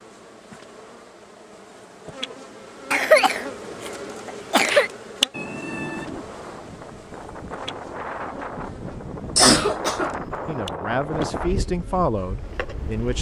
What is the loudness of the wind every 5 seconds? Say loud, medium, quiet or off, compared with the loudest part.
off, loud, loud.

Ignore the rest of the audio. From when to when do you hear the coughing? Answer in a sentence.
You can hear the coughing from 2.9 to 4.9 s and from 9.3 to 10.6 s.